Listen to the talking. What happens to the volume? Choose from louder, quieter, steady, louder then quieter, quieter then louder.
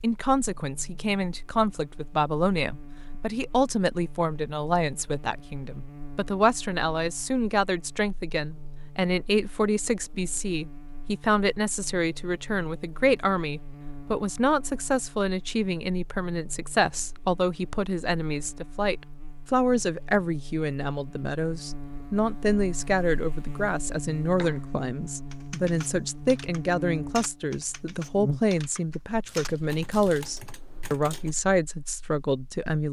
steady.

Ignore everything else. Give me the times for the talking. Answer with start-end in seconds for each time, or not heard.
0.0-32.8.